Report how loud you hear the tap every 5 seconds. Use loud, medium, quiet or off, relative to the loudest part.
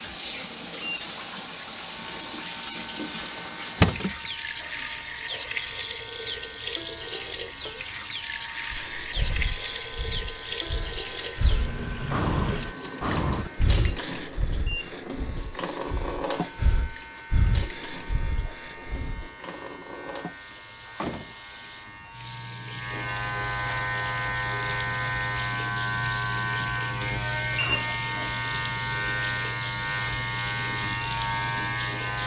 loud, loud, loud, medium, medium, loud, loud.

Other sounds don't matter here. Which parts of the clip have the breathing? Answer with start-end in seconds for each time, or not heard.
8.7-19.3.